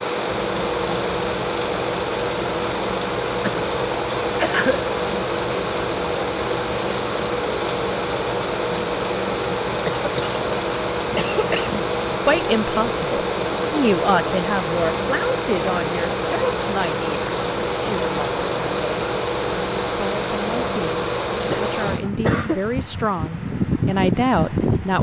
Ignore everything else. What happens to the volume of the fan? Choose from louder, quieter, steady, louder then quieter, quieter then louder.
steady.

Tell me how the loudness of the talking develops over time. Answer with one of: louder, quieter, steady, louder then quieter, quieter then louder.
quieter then louder.